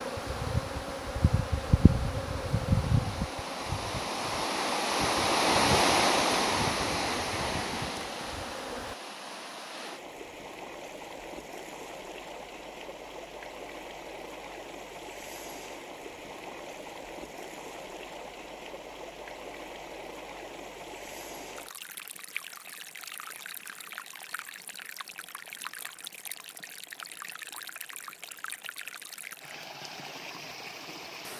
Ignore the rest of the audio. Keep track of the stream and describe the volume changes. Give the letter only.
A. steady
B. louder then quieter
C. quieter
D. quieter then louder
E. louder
C.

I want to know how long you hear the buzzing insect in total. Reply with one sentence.
You can hear the buzzing insect for 9 seconds altogether.